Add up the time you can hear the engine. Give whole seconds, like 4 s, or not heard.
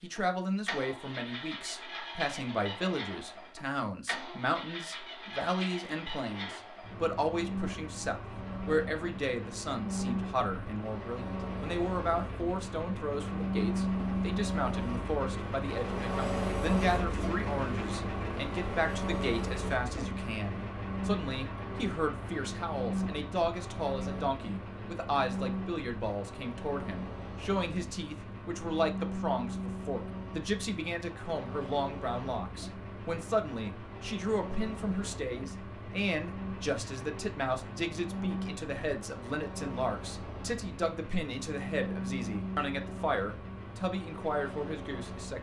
45 s.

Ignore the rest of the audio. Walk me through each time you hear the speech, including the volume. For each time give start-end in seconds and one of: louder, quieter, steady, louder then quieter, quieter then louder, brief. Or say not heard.
0.0-45.3 steady.